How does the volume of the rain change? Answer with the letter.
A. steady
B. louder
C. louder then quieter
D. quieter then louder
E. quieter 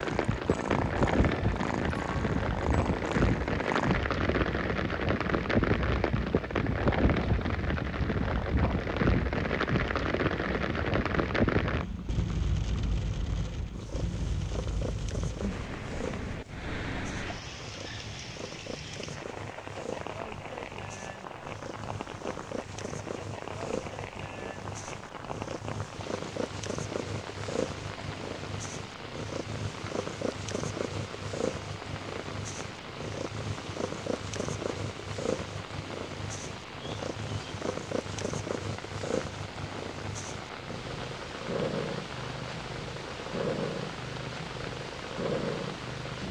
E.